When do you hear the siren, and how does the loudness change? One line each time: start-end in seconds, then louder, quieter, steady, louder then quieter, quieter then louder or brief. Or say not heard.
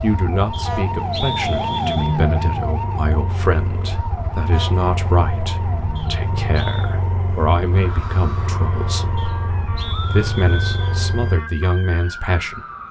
0.0-12.8 quieter.